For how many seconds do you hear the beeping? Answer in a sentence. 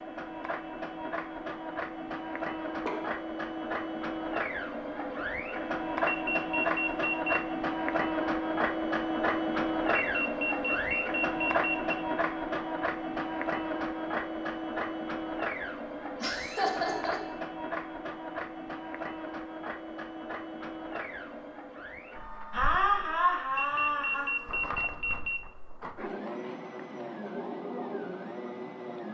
You can hear the beeping for 5 seconds altogether.